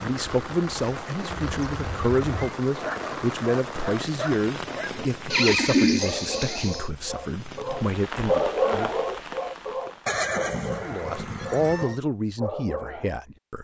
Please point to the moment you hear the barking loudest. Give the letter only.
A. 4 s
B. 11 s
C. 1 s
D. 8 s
D.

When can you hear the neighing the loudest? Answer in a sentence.
The volume of the neighing peaks at 6 seconds.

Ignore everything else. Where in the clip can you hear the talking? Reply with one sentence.
You can hear the talking from 0.0 to 8.9 s and from 10.8 to 13.5 s.